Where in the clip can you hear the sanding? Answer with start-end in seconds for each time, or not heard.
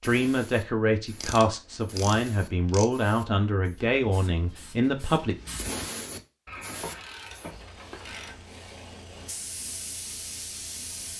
7.0-9.5.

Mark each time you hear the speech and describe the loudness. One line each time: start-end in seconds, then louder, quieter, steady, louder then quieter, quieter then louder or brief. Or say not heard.
0.0-5.3 steady.